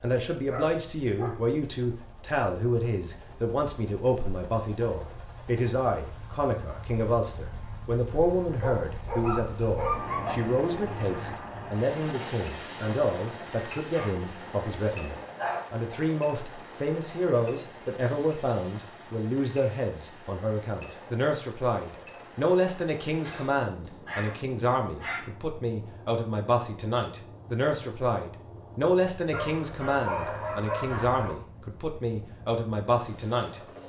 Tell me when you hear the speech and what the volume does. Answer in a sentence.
The speech can be heard from 0.0 to 33.6 s, at a steady volume.